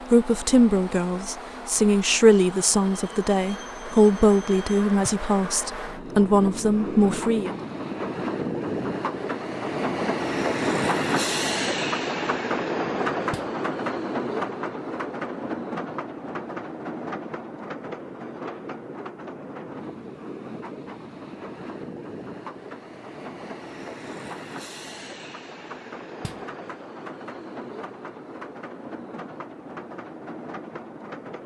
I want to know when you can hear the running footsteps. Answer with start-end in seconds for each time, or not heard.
not heard.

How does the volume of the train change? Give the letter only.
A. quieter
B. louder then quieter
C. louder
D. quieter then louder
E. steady
B.